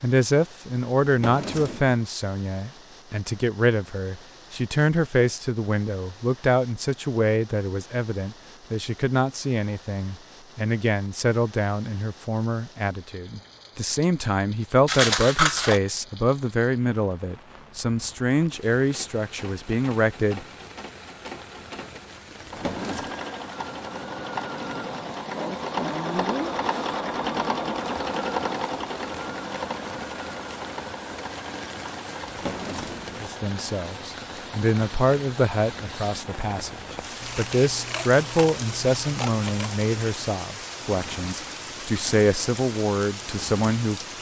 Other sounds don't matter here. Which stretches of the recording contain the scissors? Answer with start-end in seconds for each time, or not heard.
14.8-15.8, 37.2-39.8.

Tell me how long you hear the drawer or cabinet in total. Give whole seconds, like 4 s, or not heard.
3 s.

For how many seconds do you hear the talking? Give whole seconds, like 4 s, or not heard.
31 s.